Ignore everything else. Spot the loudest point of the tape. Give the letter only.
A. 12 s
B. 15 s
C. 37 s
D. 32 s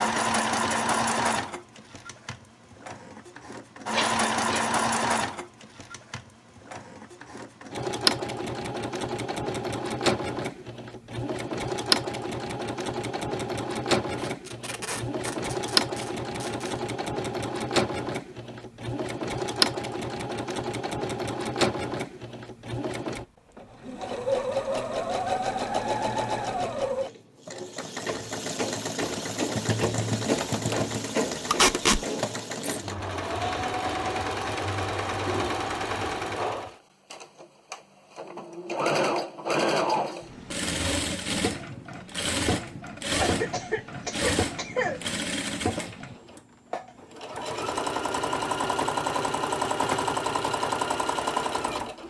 D.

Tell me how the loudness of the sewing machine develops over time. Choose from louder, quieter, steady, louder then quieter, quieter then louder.
steady.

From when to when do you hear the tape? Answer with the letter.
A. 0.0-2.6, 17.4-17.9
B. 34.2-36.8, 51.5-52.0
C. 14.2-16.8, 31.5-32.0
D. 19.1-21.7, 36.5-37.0
C.